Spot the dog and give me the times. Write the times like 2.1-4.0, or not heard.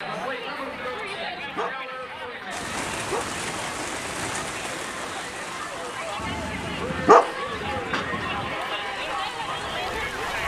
0.7-3.4, 6.2-8.5.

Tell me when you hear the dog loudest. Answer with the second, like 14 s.
7 s.